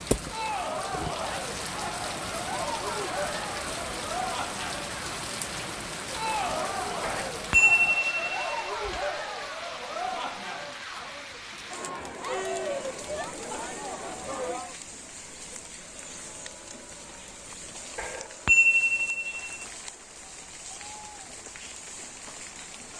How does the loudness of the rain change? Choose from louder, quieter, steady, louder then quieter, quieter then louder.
quieter.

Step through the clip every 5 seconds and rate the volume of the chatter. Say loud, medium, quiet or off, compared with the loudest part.
loud, loud, loud, quiet, quiet.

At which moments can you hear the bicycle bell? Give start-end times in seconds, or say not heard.
7.0-8.4, 17.9-19.6.